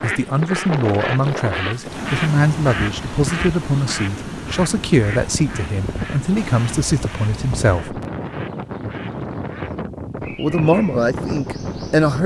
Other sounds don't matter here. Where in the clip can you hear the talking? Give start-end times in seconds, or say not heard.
0.0-8.0, 10.3-12.2.